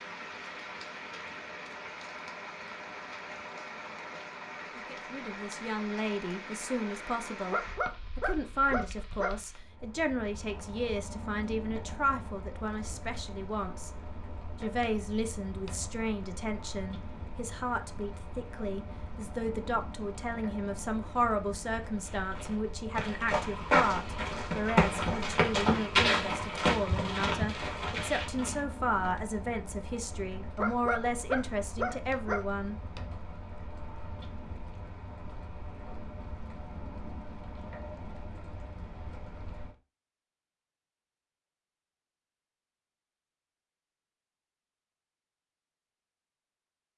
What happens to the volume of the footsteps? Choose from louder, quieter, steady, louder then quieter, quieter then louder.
louder then quieter.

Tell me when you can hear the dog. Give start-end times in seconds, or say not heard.
7.5-9.3, 30.6-32.4.